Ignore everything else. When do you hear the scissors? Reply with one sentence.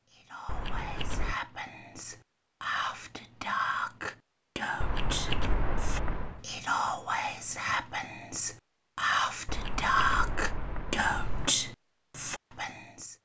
You can hear the scissors from 0.5 to 1.4 s, from 4.8 to 6.3 s and from 9.4 to 11.5 s.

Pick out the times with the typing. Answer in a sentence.
You can't hear the typing here.